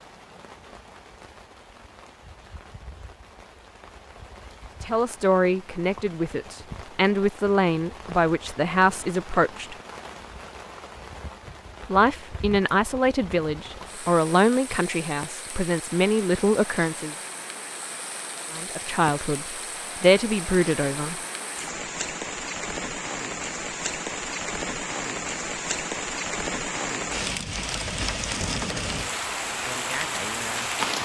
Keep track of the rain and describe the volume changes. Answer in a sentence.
The loudness of the rain goes up.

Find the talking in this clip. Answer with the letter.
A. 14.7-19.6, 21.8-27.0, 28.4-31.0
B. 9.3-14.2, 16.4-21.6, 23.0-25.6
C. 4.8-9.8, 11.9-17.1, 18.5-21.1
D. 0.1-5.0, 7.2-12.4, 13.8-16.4
C.